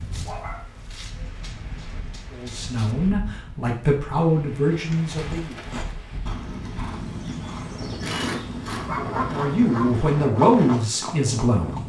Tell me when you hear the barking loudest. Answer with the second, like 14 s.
9 s.